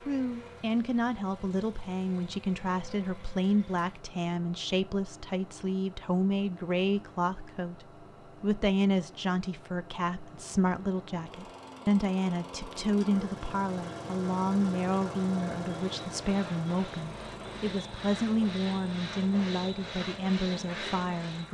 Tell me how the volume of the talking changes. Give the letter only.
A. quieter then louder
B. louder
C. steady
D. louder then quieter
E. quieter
C.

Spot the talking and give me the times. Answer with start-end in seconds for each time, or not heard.
0.0-21.5.